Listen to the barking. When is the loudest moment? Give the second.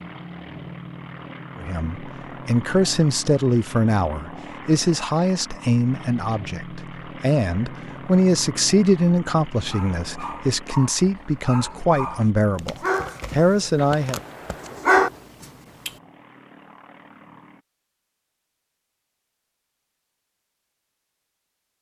15 s.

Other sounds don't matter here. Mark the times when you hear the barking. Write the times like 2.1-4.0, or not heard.
9.6-15.9.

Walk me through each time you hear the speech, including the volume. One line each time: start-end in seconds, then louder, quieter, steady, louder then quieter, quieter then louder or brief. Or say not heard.
1.6-14.2 steady.